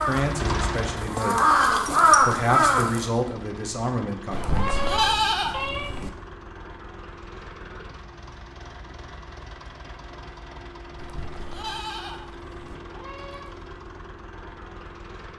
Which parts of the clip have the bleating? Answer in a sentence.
You can hear the bleating from 4.3 to 6.1 s and from 10.9 to 12.8 s.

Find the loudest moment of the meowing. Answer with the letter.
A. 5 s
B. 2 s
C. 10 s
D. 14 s
A.